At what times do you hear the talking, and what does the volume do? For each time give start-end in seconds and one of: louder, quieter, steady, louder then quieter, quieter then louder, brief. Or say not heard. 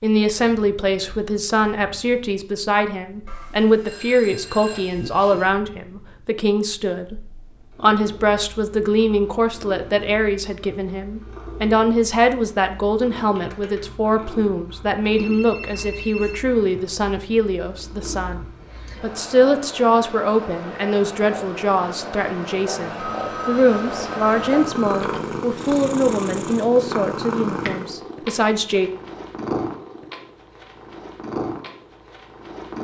0.0-28.9 steady.